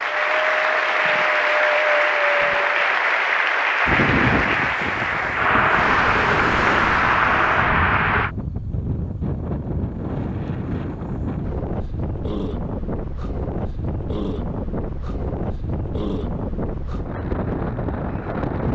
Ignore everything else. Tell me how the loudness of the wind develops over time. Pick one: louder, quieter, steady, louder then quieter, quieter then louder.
steady.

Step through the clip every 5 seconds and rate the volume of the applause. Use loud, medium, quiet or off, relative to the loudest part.
loud, loud, off, off.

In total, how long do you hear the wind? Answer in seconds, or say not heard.
19 s.